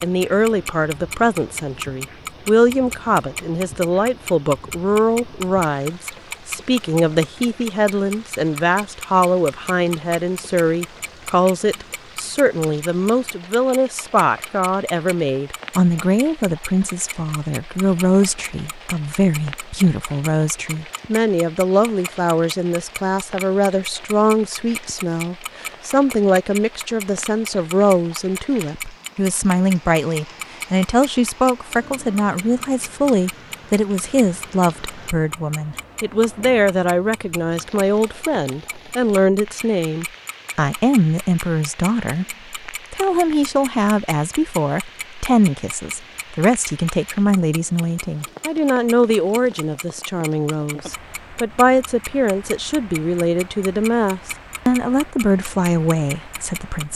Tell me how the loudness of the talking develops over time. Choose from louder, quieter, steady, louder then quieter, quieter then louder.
steady.